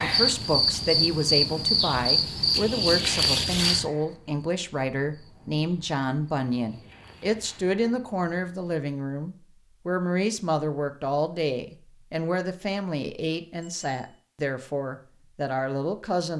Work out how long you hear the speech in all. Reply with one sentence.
You can hear the speech for 16 seconds altogether.